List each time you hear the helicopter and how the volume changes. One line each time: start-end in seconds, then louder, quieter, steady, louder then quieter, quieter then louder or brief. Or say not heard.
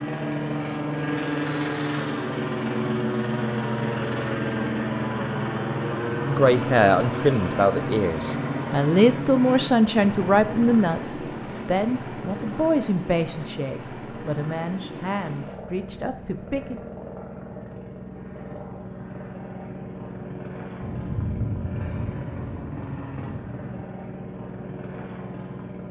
0.0-25.8 quieter.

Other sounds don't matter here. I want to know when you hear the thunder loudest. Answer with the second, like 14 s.
21 s.